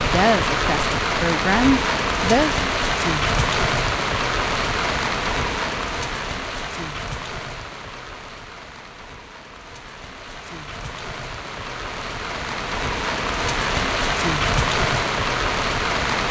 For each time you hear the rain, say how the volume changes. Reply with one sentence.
The rain can be heard from 0.0 to 16.2 s, getting quieter then louder.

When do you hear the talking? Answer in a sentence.
You can hear the talking from 0.0 to 2.6 s.